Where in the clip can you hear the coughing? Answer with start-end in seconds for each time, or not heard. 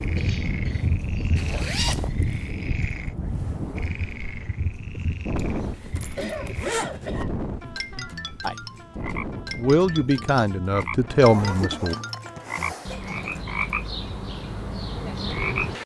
0.1-1.7, 6.2-7.3, 12.7-13.3.